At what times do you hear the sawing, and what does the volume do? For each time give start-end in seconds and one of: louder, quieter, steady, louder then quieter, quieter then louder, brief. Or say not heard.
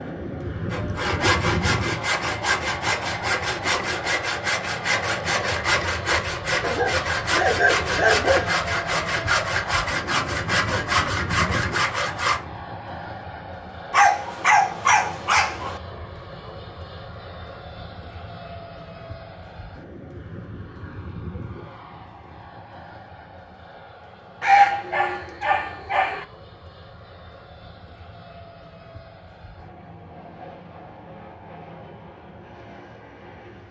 0.7-12.4 steady.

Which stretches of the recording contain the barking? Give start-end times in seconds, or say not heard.
6.6-8.5, 13.9-15.8, 24.4-26.2.